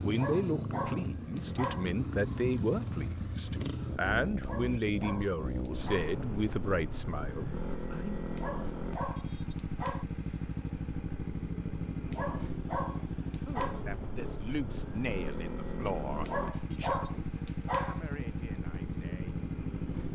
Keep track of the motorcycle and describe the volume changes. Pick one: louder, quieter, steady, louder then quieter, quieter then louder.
steady.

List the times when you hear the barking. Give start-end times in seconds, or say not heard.
0.1-1.9, 4.4-6.2, 8.3-10.1, 12.1-13.8, 16.2-18.0.